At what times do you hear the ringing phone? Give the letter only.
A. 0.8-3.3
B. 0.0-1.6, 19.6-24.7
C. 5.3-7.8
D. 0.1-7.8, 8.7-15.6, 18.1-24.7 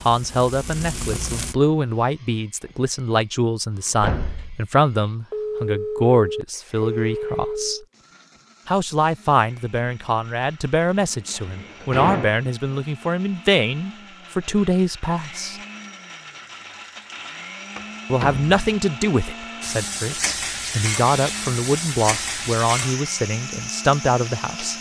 C.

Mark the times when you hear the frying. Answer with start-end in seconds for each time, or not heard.
0.0-1.6, 19.6-24.7.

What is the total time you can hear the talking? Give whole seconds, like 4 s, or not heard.
21 s.